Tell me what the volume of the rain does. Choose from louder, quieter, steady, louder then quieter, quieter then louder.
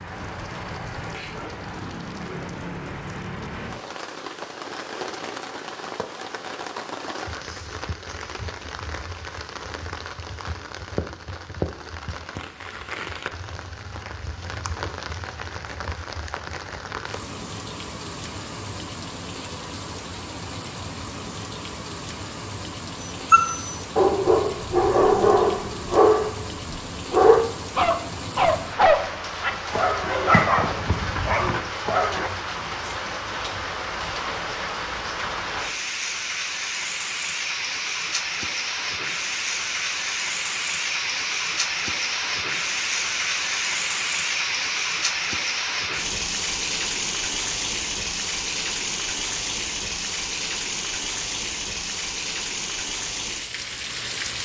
louder.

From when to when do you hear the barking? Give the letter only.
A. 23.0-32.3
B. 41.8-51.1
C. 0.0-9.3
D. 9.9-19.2
A.